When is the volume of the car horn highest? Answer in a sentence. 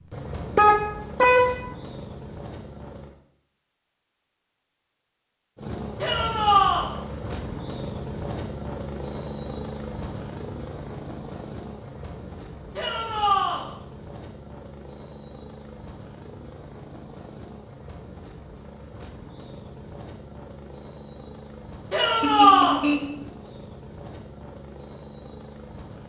The loudest moment of the car horn is at 1 second.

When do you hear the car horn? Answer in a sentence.
The car horn can be heard from 0.6 to 1.6 s and from 22.2 to 23.2 s.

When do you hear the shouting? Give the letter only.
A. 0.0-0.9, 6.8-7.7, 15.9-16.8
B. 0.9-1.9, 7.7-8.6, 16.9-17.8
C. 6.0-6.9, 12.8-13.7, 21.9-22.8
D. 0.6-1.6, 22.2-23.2
C.